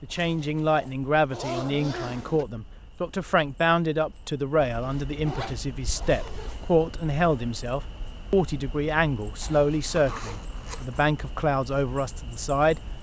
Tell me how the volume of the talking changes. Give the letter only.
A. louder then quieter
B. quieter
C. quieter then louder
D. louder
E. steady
E.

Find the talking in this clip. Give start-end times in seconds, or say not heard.
0.0-12.8.